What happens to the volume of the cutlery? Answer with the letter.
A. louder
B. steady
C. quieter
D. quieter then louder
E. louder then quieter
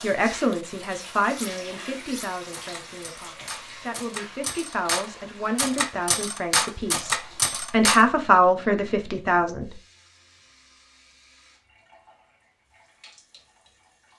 A.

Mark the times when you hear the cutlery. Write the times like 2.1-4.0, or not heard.
1.4-8.1.